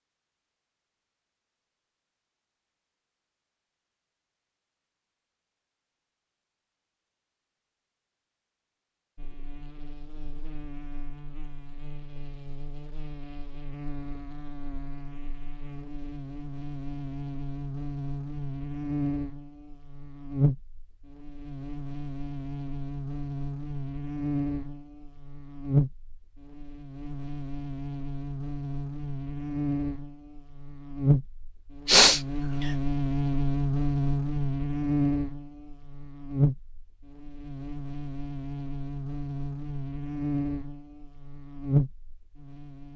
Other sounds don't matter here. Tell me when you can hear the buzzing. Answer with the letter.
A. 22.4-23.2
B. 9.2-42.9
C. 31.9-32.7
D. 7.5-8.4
B.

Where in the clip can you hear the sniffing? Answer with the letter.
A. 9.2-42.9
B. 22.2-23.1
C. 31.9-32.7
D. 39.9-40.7
C.